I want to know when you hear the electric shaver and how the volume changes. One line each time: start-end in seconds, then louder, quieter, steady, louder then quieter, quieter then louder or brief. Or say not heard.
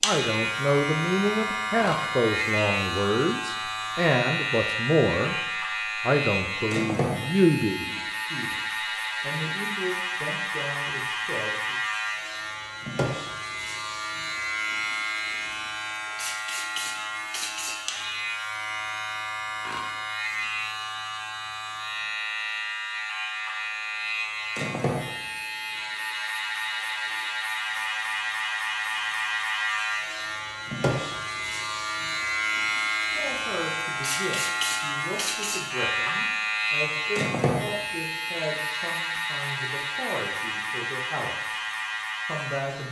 0.0-42.8 steady.